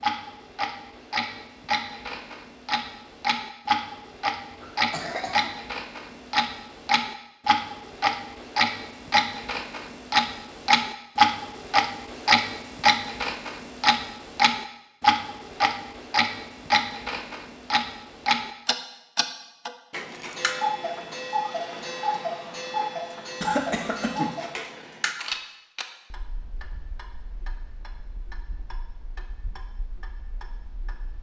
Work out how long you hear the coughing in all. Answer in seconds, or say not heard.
2 s.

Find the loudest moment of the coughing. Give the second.
24 s.